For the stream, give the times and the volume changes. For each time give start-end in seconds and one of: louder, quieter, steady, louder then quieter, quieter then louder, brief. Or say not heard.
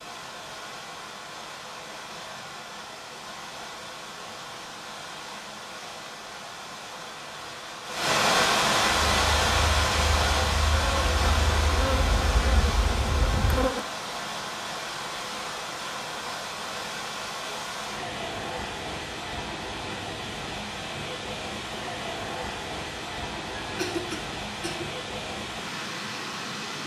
0.0-26.8 louder then quieter.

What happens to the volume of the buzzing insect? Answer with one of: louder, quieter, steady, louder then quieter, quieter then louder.
louder.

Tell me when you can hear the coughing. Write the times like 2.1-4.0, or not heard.
23.6-24.9.